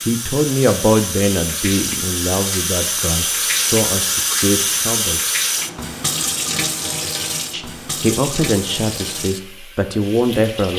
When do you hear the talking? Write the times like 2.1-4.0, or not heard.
0.0-5.2, 7.5-10.7.